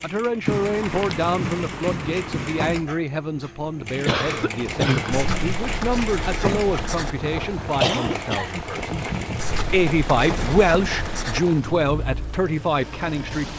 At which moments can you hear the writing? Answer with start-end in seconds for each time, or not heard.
0.5-2.9, 5.1-7.2, 9.3-11.4.